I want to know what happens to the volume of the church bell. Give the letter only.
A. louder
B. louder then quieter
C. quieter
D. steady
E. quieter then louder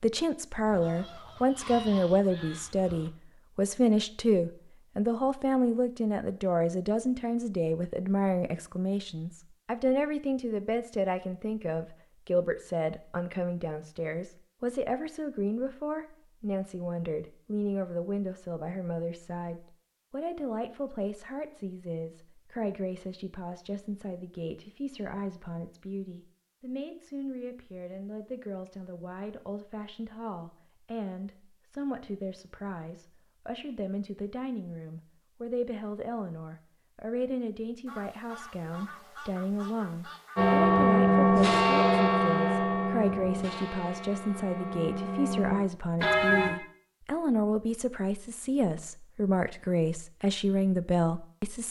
E.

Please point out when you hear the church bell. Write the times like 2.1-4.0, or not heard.
40.4-46.5.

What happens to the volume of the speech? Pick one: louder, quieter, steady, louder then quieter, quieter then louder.
quieter then louder.